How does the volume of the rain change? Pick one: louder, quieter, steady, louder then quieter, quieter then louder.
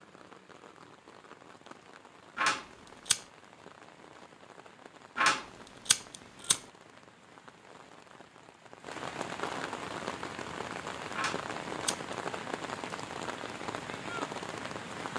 louder.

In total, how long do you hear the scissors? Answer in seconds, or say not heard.
3 s.